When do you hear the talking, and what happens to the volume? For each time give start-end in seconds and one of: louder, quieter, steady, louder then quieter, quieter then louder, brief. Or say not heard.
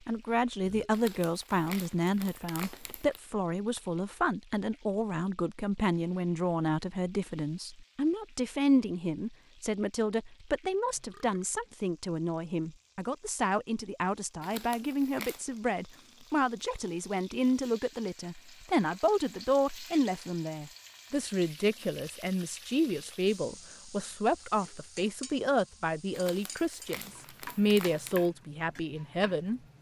0.1-29.6 steady.